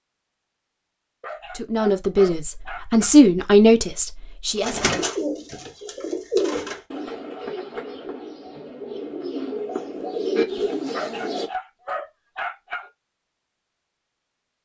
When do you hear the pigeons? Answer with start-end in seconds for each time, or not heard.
4.5-11.5.